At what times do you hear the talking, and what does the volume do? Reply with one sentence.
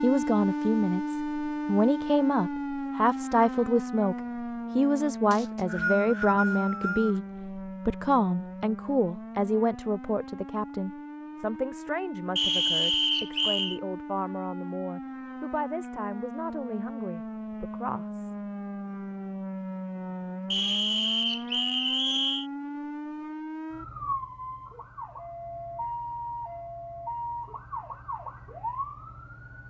You can hear the talking from 0.0 to 18.4 s, getting quieter.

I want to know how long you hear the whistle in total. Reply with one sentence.
The whistle can be heard for 5 seconds in total.